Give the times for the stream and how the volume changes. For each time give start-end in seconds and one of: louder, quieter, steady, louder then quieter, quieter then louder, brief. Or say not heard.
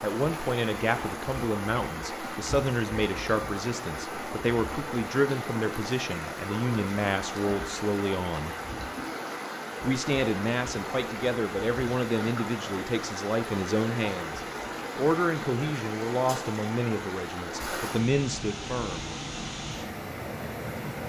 0.0-21.0 steady.